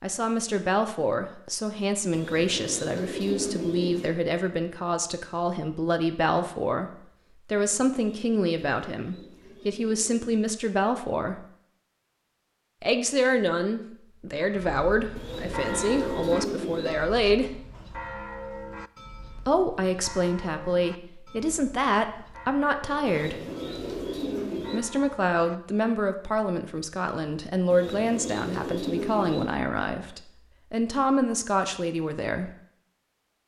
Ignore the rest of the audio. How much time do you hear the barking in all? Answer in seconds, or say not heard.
not heard.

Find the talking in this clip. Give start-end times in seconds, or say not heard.
0.0-11.4, 12.8-17.6, 19.4-23.4, 24.7-32.5.